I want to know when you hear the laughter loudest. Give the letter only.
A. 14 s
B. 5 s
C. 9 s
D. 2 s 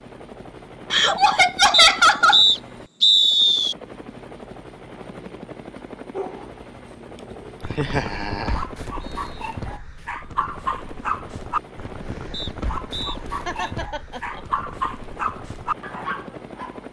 D.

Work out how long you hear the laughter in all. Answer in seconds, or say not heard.
3 s.